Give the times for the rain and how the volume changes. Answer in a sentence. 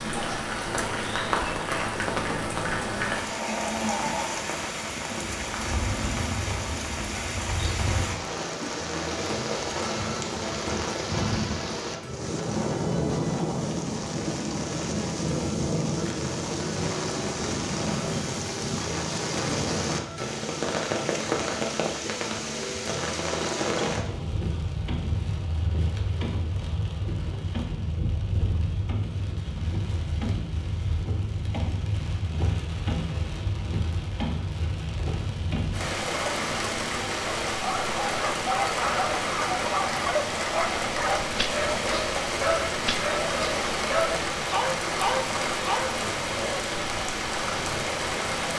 The rain can be heard from 0.0 to 48.5 s, at a steady volume.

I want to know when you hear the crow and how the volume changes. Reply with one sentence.
The crow can't be heard in this clip.